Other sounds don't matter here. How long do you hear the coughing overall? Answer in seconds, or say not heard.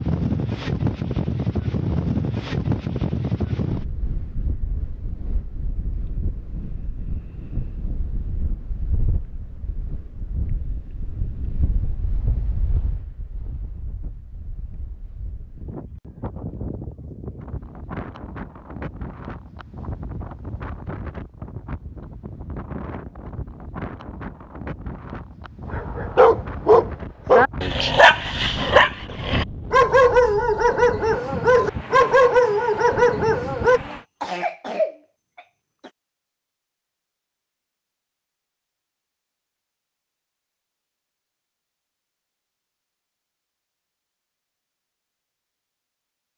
2 s.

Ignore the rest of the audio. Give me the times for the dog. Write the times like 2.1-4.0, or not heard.
25.7-33.8.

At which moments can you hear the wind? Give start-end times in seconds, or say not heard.
0.0-34.0.